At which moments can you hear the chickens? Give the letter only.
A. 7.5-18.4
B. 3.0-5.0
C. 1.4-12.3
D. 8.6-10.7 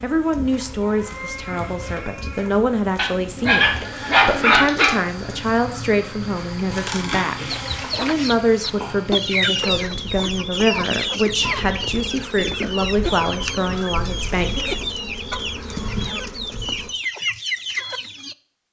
A.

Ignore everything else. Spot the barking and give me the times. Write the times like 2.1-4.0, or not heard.
3.0-5.0.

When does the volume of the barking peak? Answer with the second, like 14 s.
4 s.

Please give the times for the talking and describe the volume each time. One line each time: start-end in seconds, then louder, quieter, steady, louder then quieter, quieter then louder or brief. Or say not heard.
0.0-14.8 steady.